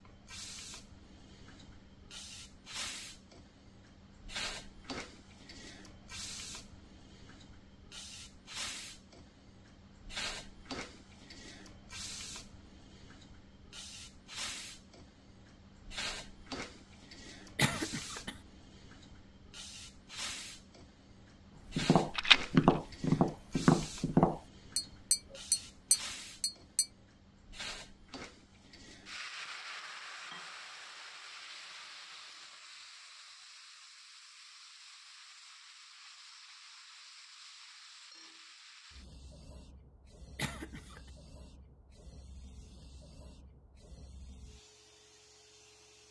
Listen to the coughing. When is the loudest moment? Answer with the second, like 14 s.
18 s.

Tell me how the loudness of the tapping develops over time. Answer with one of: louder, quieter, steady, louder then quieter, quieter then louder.
quieter.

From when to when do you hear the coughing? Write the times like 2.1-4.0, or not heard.
17.6-18.4, 40.4-41.1.